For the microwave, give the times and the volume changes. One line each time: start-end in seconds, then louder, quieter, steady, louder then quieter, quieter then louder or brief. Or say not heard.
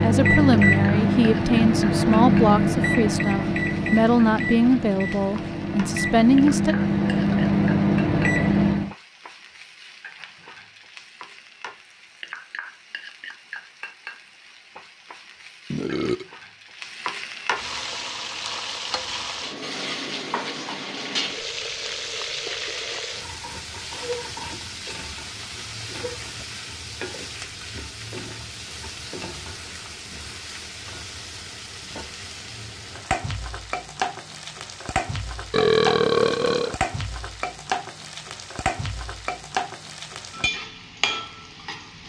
0.0-8.9 quieter then louder.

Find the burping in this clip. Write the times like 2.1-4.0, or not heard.
15.7-16.3, 35.5-36.8.